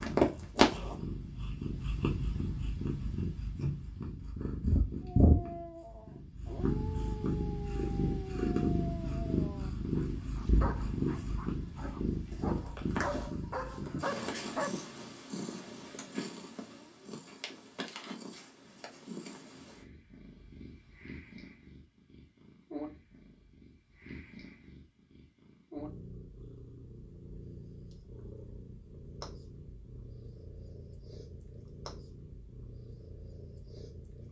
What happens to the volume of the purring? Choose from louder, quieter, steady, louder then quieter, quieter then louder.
quieter.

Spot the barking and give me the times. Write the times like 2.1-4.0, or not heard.
5.2-14.8.